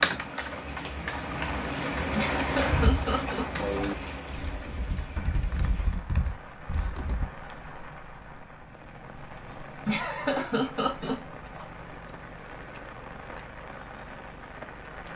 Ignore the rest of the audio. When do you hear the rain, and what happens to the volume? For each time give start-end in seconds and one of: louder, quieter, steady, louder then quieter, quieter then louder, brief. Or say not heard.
0.0-15.1 quieter.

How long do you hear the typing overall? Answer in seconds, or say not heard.
7 s.